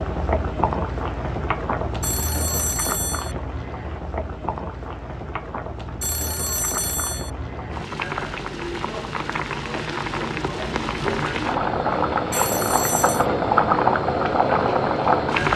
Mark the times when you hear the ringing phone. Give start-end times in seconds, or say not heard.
2.0-3.4, 6.0-7.3, 12.3-13.2.